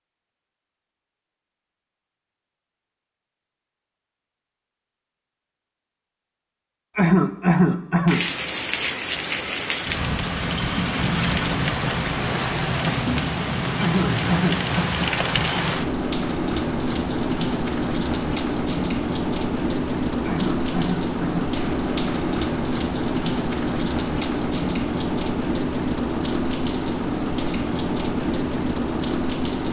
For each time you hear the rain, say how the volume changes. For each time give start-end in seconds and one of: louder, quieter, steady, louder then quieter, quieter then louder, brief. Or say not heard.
8.1-29.6 steady.